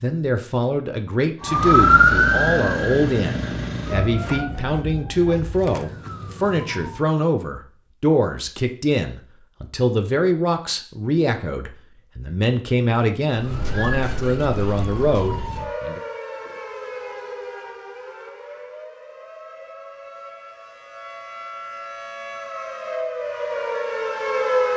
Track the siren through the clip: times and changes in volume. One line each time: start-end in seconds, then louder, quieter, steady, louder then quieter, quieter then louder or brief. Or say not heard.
1.4-7.1 quieter
13.3-24.7 quieter then louder.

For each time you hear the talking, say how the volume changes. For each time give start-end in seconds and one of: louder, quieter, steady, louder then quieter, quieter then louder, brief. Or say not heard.
0.0-16.0 steady.